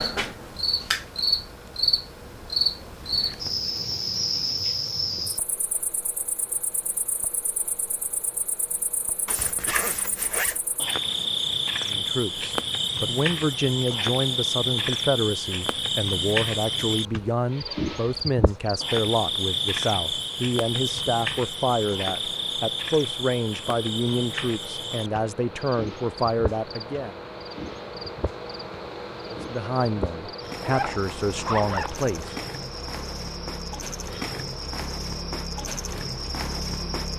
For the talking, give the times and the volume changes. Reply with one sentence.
The talking can be heard from 11.8 to 27.1 s, at a steady volume; and briefly from 29.3 to 32.3 s.